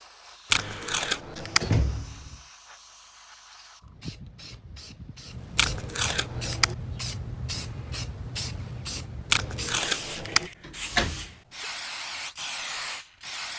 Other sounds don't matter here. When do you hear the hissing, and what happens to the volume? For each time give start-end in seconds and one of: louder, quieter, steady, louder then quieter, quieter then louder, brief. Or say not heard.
0.0-13.5 louder.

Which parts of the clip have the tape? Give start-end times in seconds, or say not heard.
0.5-1.7, 5.5-6.8, 9.3-10.5.